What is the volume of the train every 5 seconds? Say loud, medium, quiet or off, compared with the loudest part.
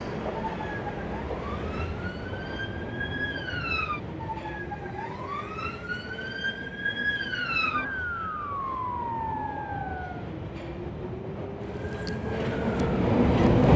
medium, quiet, loud.